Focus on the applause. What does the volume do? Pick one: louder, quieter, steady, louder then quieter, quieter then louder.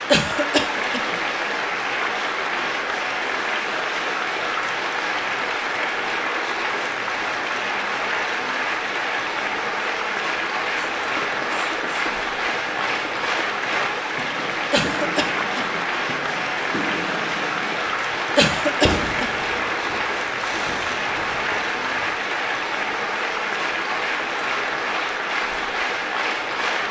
steady.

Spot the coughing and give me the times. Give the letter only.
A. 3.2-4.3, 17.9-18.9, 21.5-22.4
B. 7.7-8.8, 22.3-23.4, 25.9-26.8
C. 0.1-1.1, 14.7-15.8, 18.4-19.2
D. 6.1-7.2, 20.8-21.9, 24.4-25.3
C.